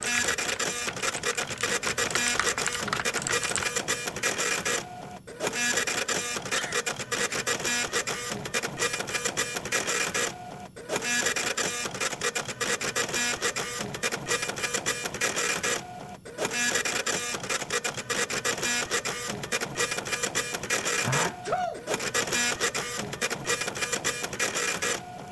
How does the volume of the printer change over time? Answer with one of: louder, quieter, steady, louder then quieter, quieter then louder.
steady.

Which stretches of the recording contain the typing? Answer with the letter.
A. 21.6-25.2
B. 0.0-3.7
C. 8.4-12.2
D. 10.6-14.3
B.